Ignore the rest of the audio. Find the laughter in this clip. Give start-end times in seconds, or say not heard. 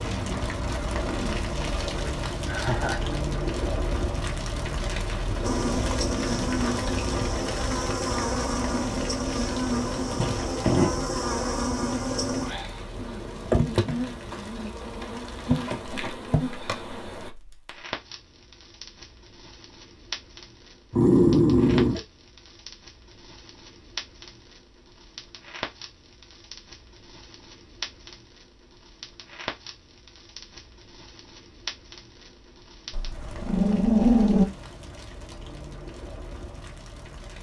2.5-3.2.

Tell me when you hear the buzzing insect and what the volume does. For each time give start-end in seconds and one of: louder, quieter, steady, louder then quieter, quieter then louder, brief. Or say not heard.
5.4-17.3 steady.